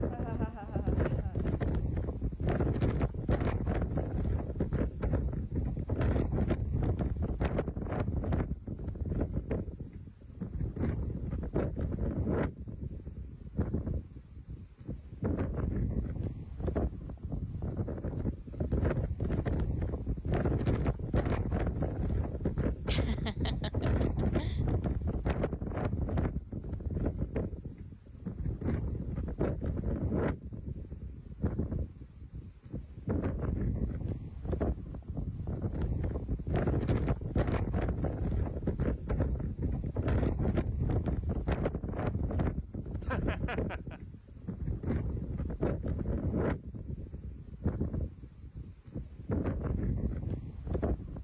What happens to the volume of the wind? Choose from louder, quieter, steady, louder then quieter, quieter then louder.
steady.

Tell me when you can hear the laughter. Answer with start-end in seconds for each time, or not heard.
0.1-1.4, 22.9-24.6, 43.0-44.0.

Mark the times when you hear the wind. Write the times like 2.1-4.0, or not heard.
0.0-51.1.